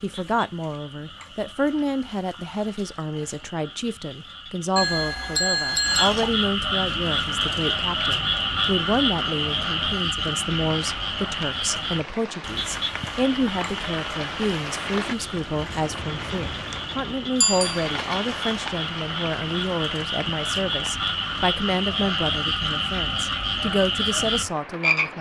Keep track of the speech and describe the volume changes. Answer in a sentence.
The loudness of the speech stays about the same.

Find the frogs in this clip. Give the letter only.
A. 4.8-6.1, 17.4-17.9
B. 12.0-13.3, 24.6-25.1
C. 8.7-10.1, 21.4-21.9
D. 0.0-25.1
D.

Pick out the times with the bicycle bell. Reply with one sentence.
The bicycle bell can be heard from 4.8 to 6.1 s and from 17.4 to 17.9 s.